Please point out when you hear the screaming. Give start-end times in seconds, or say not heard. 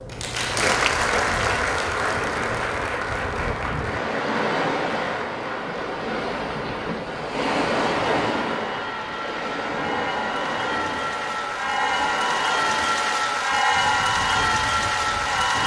not heard.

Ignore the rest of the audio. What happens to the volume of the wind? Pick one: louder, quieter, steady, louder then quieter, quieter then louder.
louder then quieter.